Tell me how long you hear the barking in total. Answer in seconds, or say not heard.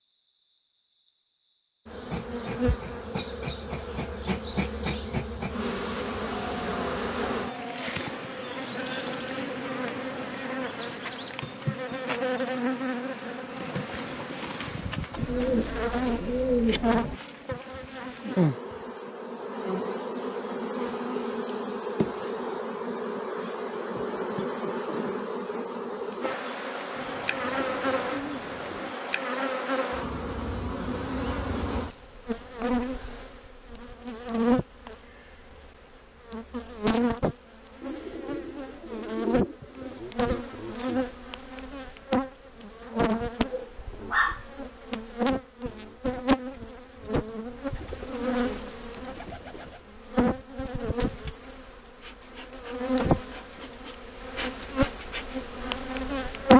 2 s.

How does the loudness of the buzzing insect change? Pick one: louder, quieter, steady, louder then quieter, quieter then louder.
steady.